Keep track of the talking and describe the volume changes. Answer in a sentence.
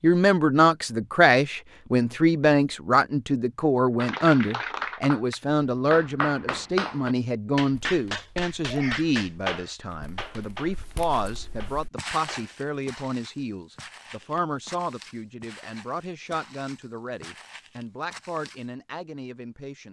The loudness of the talking goes down.